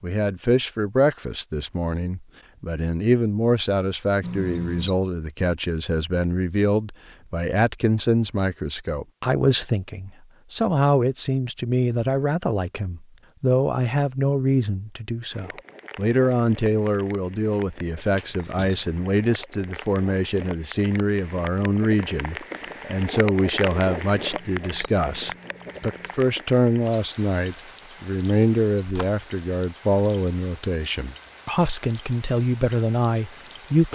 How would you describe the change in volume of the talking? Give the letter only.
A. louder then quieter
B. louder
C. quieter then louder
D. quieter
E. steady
E.